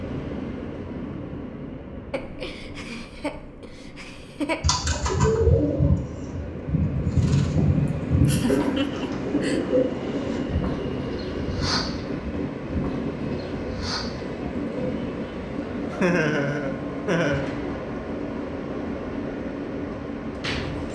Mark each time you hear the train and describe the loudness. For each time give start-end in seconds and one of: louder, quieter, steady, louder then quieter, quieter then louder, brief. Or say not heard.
0.0-20.9 louder.